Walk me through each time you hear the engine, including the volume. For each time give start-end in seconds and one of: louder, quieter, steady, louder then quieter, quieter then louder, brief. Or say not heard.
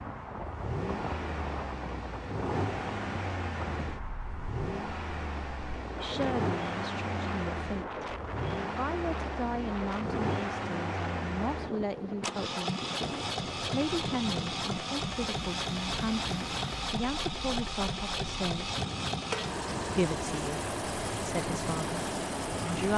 0.0-22.9 steady.